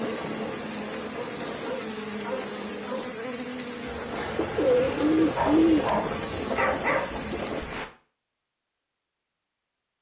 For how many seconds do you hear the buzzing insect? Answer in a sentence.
The buzzing insect can be heard for 8 seconds in total.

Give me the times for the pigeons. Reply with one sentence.
You can hear the pigeons from 4.3 to 5.9 s.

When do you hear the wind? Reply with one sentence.
You can hear the wind from 0.0 to 7.8 s.